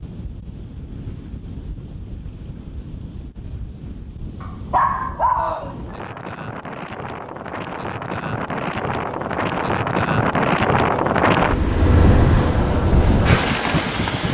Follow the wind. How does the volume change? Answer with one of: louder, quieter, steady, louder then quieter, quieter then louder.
louder.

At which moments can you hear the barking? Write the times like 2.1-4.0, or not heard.
4.4-5.8.